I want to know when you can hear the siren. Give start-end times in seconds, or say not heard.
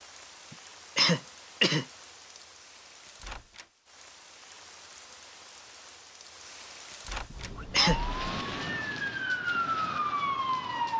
7.3-10.9.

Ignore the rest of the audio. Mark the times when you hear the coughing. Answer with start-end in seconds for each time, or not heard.
0.5-1.9, 7.3-8.0.